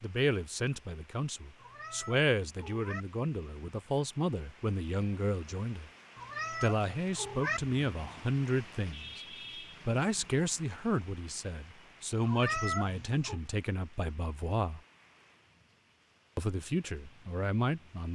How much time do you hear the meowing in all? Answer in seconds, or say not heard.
4 s.